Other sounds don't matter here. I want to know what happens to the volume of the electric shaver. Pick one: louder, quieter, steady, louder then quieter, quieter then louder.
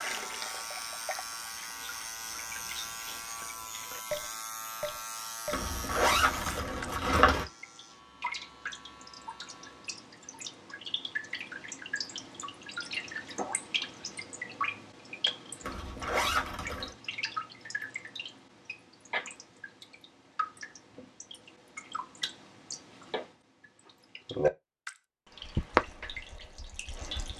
quieter.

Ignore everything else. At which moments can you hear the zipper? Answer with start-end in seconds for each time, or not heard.
5.5-7.5, 15.6-16.9.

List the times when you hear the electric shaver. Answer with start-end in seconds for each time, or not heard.
0.0-10.0.